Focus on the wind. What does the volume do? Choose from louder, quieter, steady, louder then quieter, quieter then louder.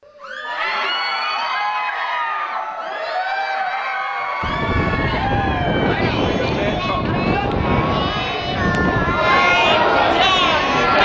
quieter.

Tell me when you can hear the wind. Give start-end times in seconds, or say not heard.
4.4-11.0.